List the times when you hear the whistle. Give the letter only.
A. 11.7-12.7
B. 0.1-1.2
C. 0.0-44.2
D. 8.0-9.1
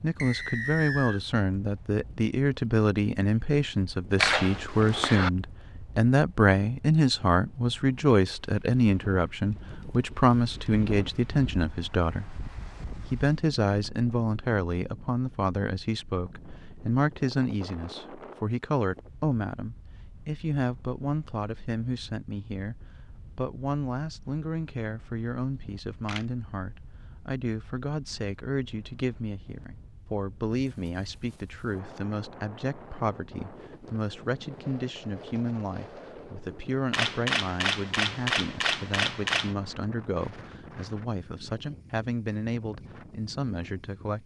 B.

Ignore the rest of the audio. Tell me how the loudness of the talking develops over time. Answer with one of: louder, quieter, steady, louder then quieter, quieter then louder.
quieter.